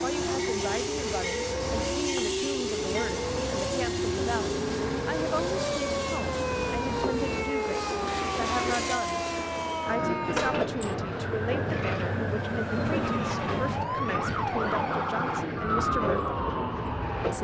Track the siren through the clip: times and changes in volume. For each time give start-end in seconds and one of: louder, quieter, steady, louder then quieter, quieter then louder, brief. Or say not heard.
0.0-17.3 steady.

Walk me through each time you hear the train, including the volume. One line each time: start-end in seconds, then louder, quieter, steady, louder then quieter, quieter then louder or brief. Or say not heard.
0.0-17.3 steady.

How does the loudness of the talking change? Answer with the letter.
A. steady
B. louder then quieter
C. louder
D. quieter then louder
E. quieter
A.